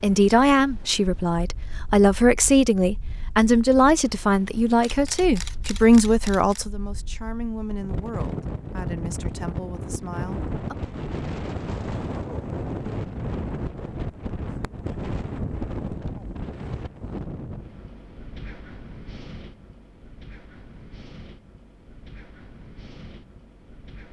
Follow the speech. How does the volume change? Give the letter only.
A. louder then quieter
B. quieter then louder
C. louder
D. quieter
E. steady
D.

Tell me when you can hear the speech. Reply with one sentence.
You can hear the speech from 0.0 to 10.8 s.